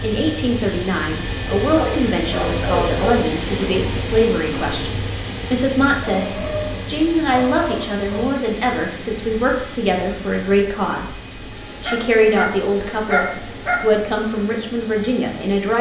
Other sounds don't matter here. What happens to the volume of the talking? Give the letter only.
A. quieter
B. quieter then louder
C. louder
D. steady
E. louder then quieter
D.